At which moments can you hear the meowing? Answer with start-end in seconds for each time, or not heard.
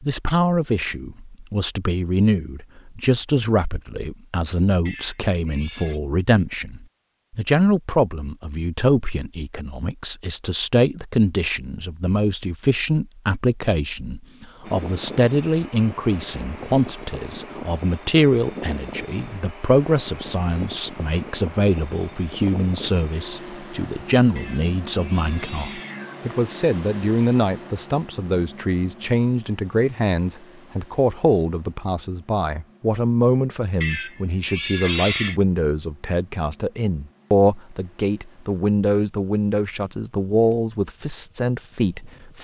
4.8-6.0, 24.4-26.2, 33.8-35.4.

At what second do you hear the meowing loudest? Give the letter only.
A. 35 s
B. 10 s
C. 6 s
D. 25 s
A.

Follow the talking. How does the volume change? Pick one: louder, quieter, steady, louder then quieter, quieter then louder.
steady.